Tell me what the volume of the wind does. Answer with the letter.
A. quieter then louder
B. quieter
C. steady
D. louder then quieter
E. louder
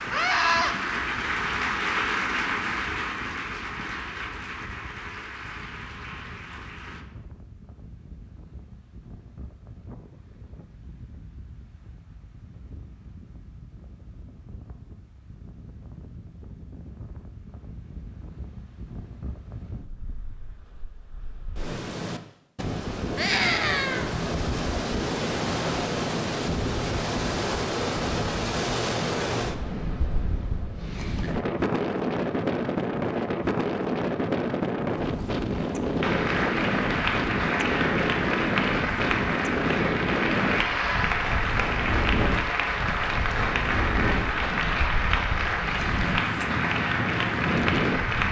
E.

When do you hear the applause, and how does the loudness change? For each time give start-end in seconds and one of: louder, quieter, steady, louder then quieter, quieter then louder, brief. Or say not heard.
0.0-7.0 quieter
36.0-48.2 steady.